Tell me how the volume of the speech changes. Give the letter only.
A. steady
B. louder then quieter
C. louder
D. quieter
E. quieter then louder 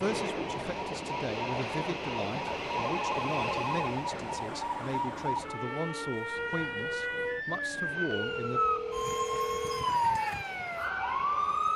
A.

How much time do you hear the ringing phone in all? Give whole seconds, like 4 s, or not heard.
3 s.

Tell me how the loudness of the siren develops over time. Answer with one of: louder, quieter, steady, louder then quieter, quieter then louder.
louder.